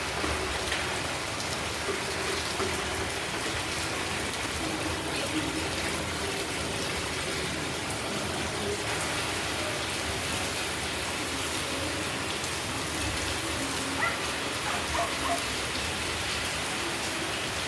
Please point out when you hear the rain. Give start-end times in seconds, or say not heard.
0.0-17.6.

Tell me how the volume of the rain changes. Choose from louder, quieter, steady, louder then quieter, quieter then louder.
steady.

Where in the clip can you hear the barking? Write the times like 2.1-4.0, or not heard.
13.9-15.4.